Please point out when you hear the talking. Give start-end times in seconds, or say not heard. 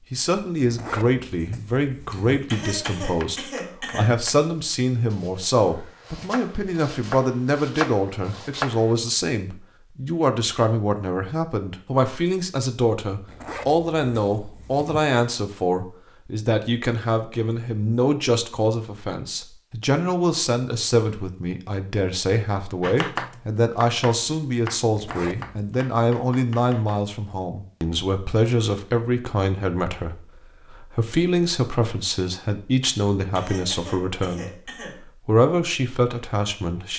0.1-36.9.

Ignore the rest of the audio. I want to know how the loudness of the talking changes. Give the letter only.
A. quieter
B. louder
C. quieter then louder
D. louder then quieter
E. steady
E.